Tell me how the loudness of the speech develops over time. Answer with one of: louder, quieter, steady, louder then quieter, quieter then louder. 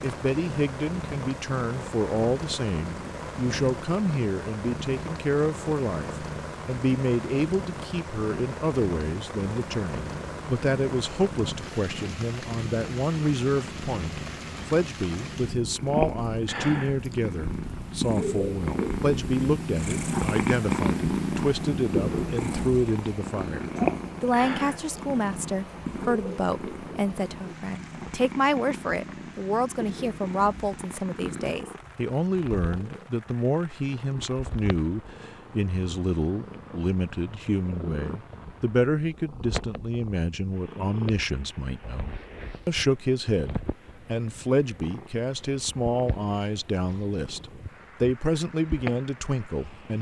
steady.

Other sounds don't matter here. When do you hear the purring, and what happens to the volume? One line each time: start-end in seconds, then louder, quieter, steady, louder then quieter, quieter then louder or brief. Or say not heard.
0.0-49.9 louder then quieter.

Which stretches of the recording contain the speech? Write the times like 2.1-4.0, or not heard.
0.0-49.9.